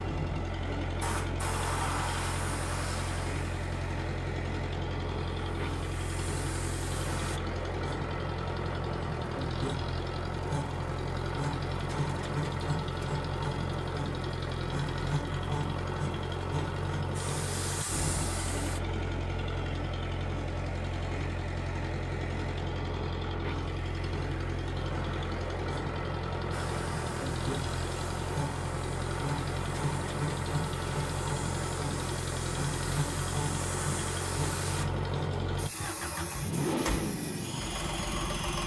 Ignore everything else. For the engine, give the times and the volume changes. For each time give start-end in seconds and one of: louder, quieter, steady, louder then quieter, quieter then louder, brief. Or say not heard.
0.0-38.6 steady.